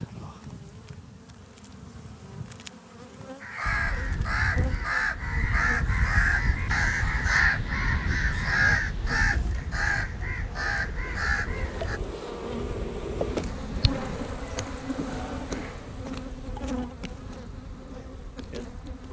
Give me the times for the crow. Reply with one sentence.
The crow can be heard from 3.4 to 12.0 s.